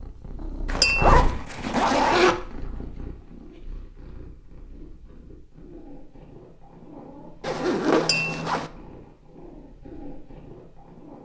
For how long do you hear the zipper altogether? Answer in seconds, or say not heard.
3 s.